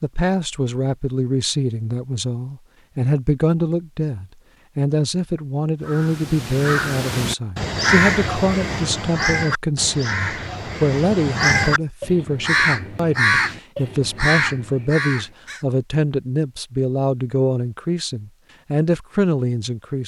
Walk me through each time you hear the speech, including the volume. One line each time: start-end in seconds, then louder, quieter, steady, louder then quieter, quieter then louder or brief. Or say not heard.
0.0-20.0 steady.